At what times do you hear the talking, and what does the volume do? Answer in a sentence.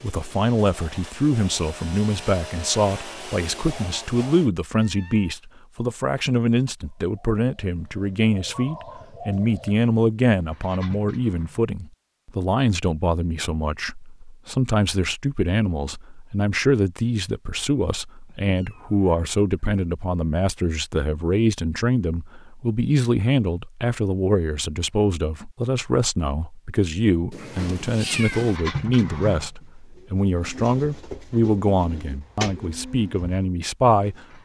The talking can be heard from 0.0 to 34.2 s, at a steady volume.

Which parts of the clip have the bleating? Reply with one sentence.
The bleating can't be heard in this clip.